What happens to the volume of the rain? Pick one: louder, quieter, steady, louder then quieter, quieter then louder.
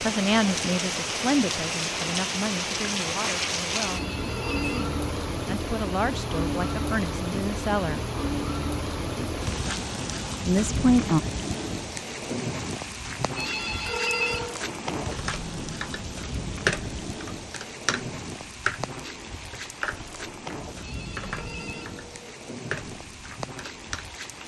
quieter.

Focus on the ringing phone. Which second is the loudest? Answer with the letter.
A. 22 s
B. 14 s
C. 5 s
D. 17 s
B.